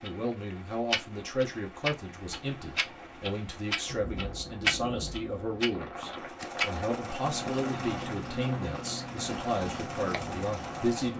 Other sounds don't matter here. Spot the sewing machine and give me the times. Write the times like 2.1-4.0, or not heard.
6.1-11.1.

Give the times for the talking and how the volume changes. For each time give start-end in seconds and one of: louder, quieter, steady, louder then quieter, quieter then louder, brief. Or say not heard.
0.0-11.1 steady.